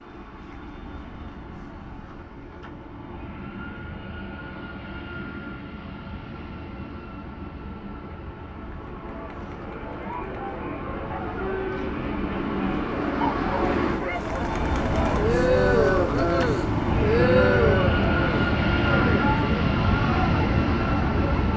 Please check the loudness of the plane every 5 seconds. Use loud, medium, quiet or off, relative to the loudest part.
quiet, quiet, medium, loud, loud.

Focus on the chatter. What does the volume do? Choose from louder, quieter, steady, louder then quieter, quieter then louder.
louder then quieter.